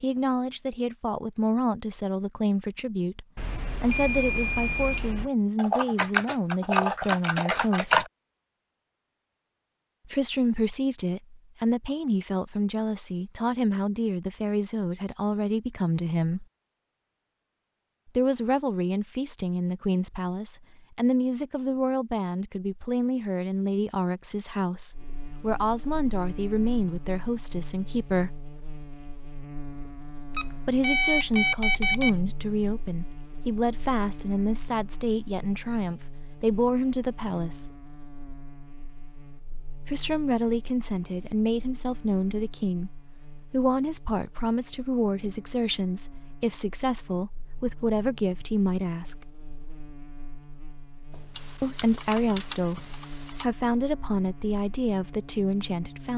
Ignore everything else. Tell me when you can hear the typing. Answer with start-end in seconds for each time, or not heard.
5.5-8.1, 51.4-53.5.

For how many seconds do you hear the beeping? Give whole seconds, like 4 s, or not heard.
6 s.